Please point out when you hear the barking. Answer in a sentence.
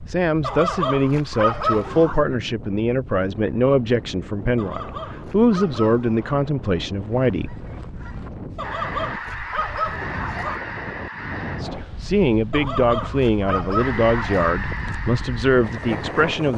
The barking can be heard from 0.4 to 2.2 s, from 4.5 to 6.2 s, from 8.6 to 10.6 s and from 12.5 to 14.6 s.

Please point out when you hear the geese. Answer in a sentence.
You can hear the geese from 7.1 to 11.7 s and from 13.8 to 16.3 s.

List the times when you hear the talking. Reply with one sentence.
You can hear the talking from 0.1 to 7.6 s and from 11.6 to 16.5 s.